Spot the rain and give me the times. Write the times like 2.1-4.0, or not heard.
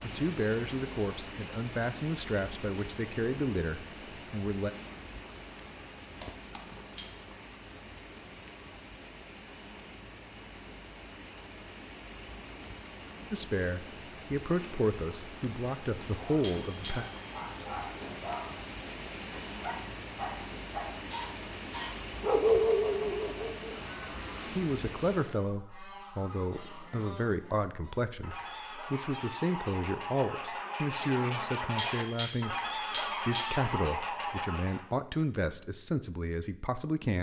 0.0-25.4.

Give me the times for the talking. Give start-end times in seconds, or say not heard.
0.0-4.7, 13.3-17.1, 24.6-37.1.